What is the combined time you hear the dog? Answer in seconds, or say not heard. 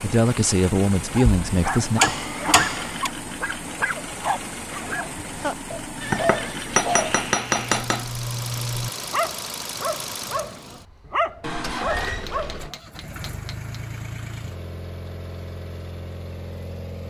12 s.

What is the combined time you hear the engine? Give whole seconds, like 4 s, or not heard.
17 s.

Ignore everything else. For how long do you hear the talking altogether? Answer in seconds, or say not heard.
2 s.